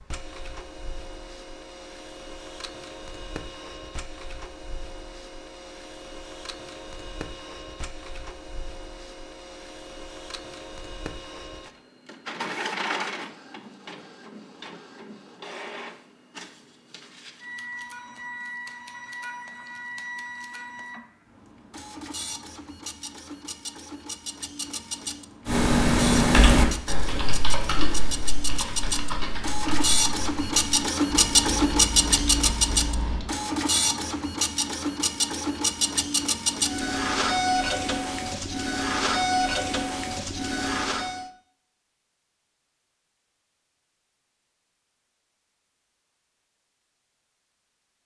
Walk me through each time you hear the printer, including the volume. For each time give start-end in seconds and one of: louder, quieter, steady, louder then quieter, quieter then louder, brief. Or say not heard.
0.0-41.3 louder.